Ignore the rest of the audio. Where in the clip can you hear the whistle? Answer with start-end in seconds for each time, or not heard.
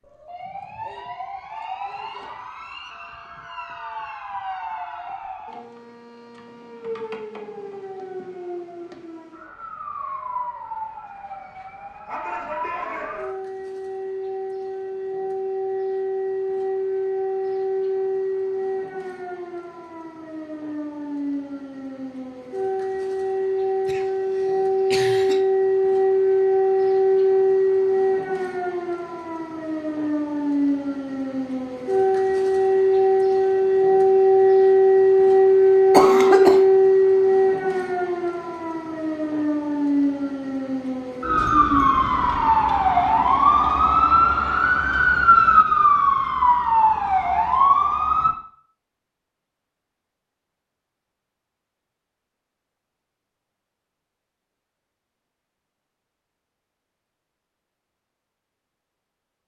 not heard.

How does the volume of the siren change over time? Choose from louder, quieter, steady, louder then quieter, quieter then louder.
louder.